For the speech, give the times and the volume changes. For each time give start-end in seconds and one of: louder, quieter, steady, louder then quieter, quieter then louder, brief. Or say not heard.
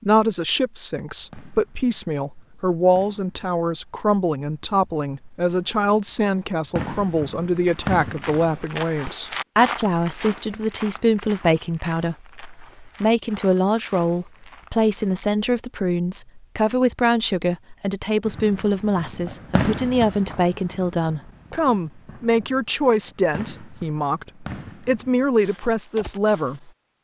0.0-26.7 steady.